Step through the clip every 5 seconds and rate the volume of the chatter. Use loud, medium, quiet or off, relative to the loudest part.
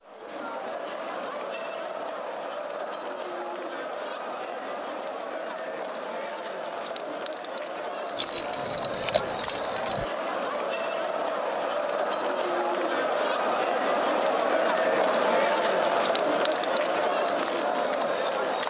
medium, medium, loud, loud.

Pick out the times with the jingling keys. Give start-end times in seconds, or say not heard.
8.2-10.1.